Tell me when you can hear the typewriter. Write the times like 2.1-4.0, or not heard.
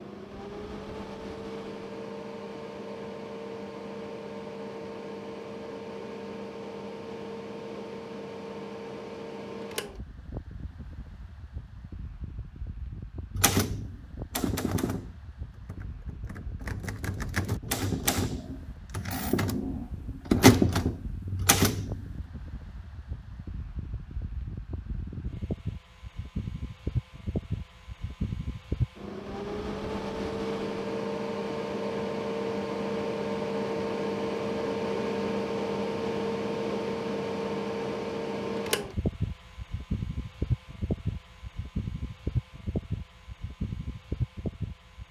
13.3-22.1.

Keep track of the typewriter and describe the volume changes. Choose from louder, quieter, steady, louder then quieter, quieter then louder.
quieter then louder.